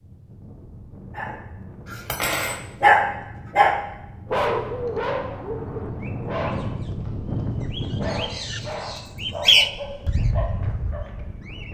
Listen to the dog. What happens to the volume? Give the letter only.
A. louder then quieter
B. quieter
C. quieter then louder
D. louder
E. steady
B.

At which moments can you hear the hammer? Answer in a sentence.
You can't hear the hammer here.